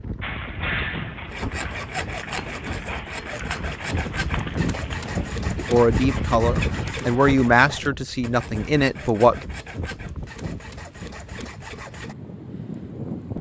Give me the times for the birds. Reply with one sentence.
The birds can't be heard in this clip.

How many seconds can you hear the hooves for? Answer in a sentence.
You can hear the hooves for 7 seconds altogether.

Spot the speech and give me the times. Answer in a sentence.
You can hear the speech from 5.5 to 9.4 s.